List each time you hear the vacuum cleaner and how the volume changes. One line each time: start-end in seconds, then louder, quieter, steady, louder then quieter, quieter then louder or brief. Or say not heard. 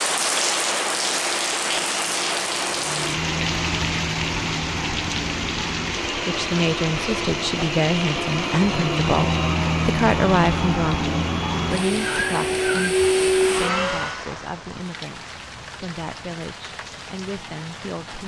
0.0-14.2 louder.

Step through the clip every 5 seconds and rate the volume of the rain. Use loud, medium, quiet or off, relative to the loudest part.
loud, medium, medium, quiet.